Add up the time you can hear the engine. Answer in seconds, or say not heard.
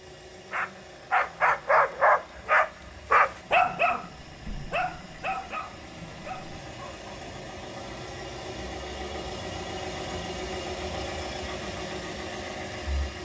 13 s.